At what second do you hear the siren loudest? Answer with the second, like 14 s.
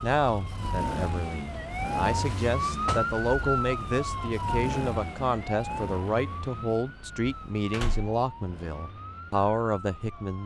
3 s.